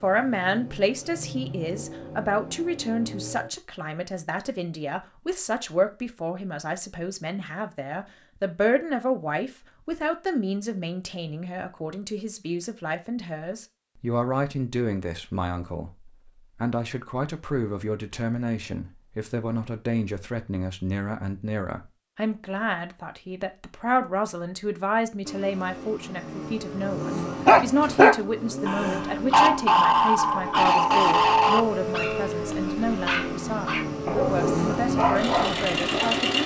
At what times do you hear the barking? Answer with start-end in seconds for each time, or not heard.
27.4-36.2.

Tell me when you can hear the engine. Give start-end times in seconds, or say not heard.
0.0-3.5, 25.2-36.4.